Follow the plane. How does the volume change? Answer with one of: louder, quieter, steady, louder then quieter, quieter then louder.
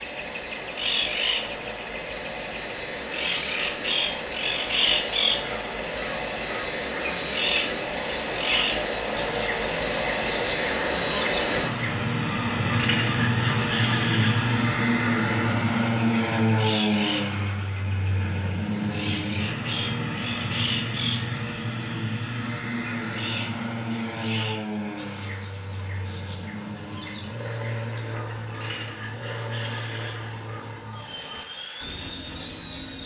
louder then quieter.